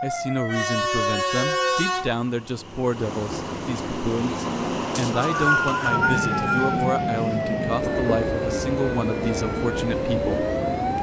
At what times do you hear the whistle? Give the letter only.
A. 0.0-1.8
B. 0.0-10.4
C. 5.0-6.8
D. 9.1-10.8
C.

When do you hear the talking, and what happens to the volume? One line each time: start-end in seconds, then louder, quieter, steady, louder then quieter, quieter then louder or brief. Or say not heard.
0.0-10.4 steady.